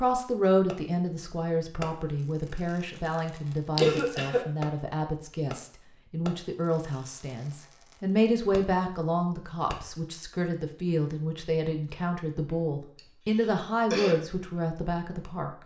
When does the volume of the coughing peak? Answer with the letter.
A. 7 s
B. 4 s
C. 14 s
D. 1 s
B.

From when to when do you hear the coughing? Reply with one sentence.
The coughing can be heard from 3.8 to 4.5 s and from 12.9 to 14.2 s.